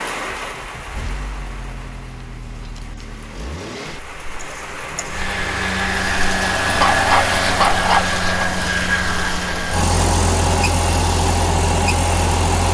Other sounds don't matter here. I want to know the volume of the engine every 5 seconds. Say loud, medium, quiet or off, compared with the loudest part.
quiet, loud, loud.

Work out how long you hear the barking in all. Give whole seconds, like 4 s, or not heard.
2 s.